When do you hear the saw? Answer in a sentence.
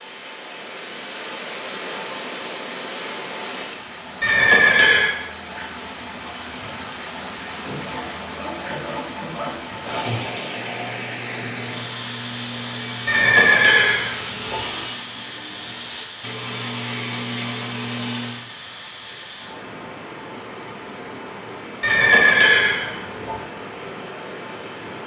The saw can be heard from 7.5 to 18.4 s.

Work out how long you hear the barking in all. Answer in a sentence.
The barking can't be heard in this clip.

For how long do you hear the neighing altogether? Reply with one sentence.
You can hear the neighing for 4 seconds altogether.